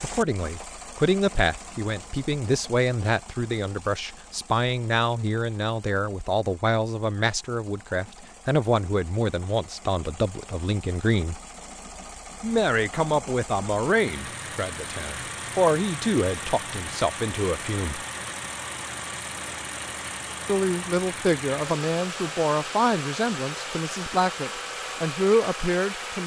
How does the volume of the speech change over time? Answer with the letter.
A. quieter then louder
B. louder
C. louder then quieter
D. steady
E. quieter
D.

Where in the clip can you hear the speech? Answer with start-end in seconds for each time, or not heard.
0.0-11.3, 12.4-18.0, 20.4-26.2.